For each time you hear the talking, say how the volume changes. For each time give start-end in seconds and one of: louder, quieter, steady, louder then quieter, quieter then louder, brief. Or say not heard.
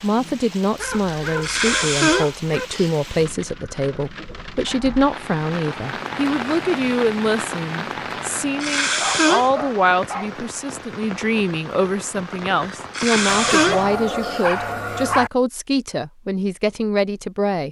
0.0-17.6 steady.